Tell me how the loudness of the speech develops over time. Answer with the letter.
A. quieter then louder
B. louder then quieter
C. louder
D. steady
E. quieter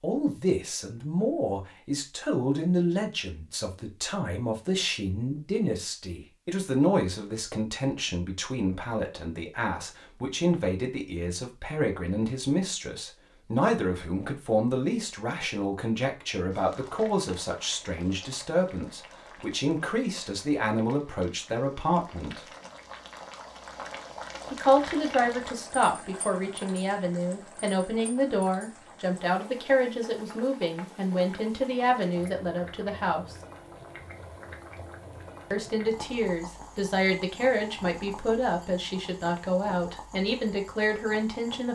D.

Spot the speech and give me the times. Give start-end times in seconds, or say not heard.
0.0-22.5, 24.5-33.4, 35.5-41.7.